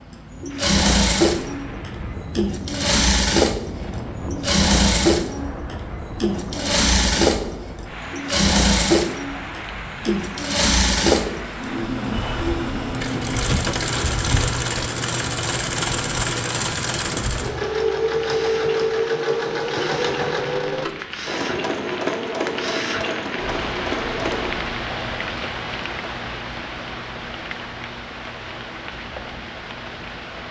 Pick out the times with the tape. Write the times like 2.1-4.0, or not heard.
not heard.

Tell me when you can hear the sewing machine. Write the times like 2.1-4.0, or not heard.
0.1-24.6.